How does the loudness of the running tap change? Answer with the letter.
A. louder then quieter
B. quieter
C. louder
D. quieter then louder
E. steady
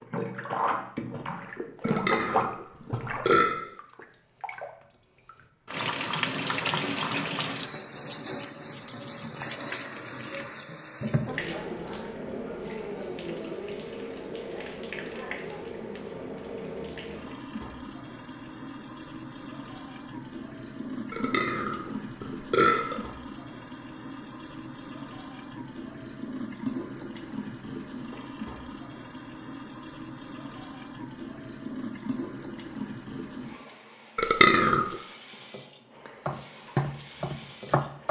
B.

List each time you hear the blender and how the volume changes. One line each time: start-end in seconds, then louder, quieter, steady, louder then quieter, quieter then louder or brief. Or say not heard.
not heard.